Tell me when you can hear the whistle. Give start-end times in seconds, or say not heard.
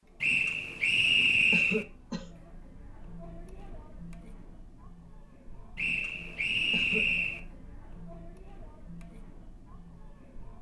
0.2-1.9, 5.8-7.4.